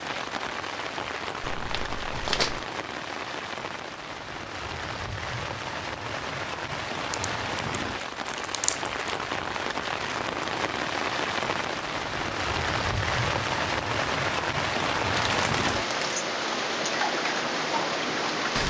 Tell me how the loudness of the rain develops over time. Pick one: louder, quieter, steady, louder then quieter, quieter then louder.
louder.